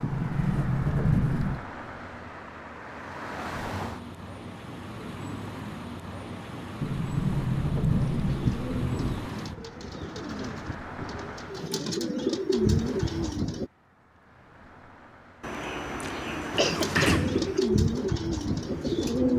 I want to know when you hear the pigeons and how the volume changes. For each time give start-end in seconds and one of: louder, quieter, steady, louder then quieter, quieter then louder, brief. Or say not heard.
8.2-13.7 louder
16.5-19.3 brief.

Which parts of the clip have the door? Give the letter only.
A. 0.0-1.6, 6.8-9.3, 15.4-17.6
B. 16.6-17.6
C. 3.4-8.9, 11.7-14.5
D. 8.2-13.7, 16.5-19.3
A.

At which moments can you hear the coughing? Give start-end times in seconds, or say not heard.
16.6-17.6.